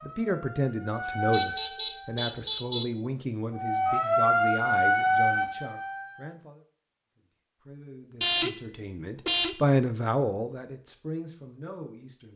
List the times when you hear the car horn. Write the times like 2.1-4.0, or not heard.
1.3-2.9, 8.2-9.6.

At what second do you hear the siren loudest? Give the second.
5 s.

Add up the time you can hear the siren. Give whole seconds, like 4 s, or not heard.
5 s.